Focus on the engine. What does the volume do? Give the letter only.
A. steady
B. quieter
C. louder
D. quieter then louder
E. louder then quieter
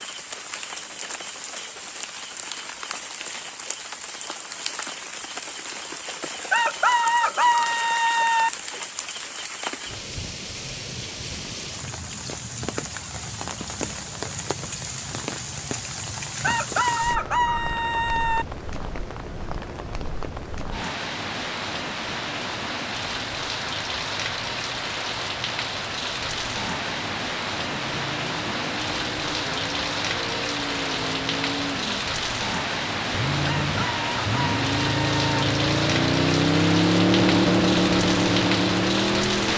C.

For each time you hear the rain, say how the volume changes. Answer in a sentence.
The rain can be heard from 0.0 to 39.5 s, getting louder.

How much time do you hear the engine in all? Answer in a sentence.
You can hear the engine for 12 seconds altogether.